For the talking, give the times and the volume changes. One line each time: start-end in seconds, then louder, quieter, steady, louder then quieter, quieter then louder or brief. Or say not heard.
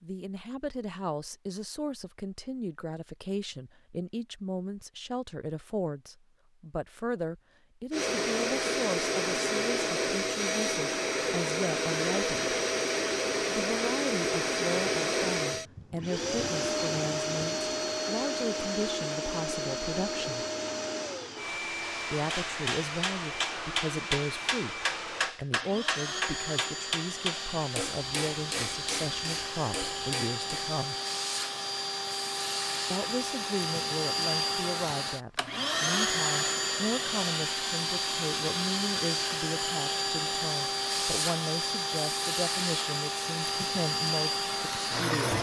0.0-12.6 steady
13.5-20.4 steady
22.1-30.9 steady
32.9-45.3 steady.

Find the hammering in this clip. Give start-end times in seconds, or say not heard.
22.1-30.8.